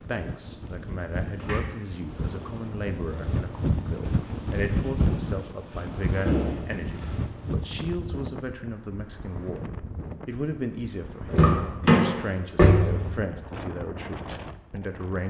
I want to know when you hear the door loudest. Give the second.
12 s.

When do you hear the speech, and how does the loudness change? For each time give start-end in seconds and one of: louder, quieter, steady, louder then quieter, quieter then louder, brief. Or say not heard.
0.0-15.2 steady.